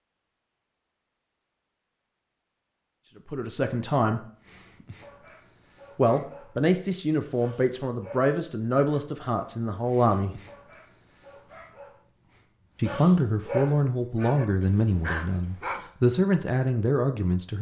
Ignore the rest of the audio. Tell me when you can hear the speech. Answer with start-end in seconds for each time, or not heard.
3.2-4.2, 6.0-10.4, 12.8-17.5.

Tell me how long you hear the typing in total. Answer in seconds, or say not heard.
not heard.